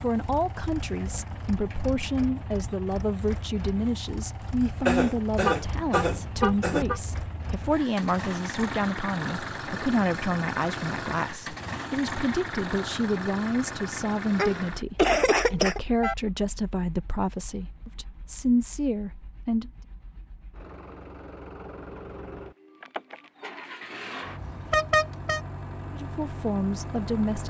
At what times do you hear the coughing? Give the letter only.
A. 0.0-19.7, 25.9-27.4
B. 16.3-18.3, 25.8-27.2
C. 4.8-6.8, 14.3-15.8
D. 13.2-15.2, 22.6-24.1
C.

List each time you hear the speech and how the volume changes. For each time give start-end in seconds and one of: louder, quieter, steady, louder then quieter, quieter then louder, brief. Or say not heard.
0.0-19.7 steady
25.9-27.4 brief.